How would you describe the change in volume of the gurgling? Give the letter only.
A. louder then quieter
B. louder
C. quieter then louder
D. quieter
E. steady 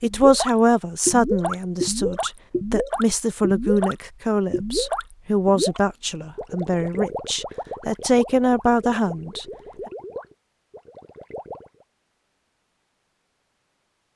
D.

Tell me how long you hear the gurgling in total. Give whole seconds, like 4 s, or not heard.
12 s.